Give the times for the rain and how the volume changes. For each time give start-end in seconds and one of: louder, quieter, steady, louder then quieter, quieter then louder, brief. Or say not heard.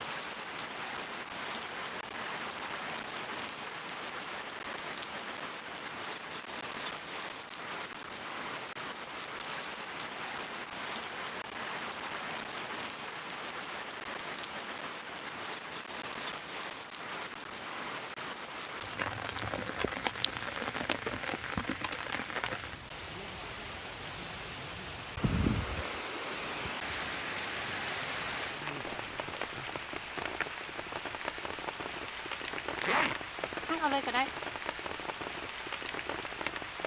0.0-36.8 steady.